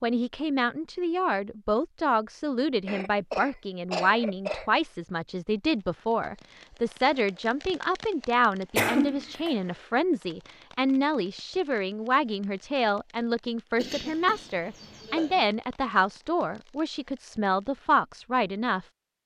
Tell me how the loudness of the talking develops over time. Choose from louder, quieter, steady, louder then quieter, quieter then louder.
steady.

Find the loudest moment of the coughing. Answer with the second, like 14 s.
9 s.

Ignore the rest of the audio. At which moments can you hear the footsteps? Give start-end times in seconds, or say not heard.
not heard.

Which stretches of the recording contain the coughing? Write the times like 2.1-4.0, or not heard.
2.9-4.7, 8.8-9.6, 13.8-15.4.